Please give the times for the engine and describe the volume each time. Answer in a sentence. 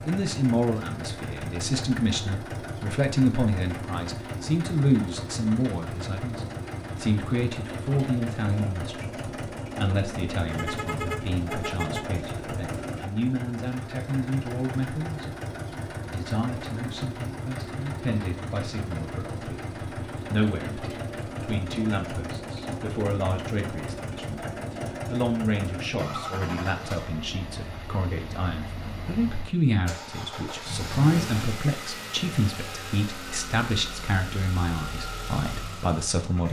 You can hear the engine from 0.0 to 36.4 s, at a steady volume.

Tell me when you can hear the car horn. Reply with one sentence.
You can hear the car horn from 10.5 to 12.1 s.